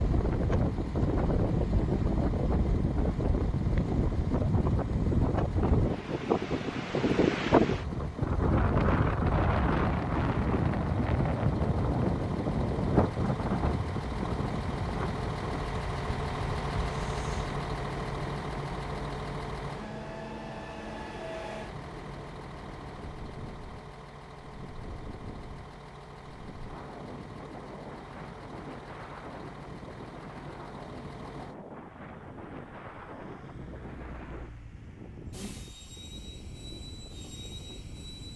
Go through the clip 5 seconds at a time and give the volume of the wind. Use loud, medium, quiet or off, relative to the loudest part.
loud, loud, loud, quiet, quiet, quiet, quiet, quiet.